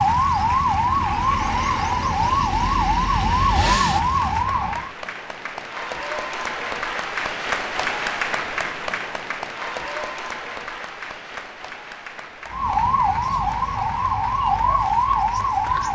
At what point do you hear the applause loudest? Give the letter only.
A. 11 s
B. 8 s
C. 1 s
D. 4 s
B.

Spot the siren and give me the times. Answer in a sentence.
The siren can be heard from 0.0 to 5.0 s and from 12.4 to 15.9 s.